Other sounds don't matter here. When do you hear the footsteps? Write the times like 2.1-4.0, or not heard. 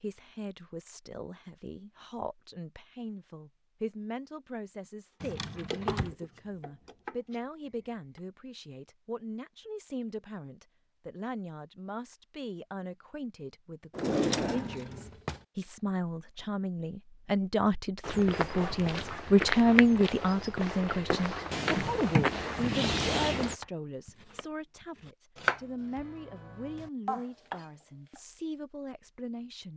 18.0-23.6.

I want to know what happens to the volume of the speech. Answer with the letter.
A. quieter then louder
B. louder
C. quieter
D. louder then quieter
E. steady
D.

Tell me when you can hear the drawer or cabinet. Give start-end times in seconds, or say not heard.
5.2-6.2, 13.9-15.4, 21.5-23.5.